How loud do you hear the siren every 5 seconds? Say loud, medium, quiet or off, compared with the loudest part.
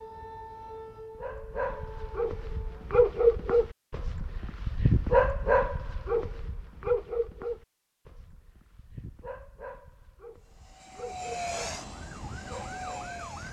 loud, off, loud.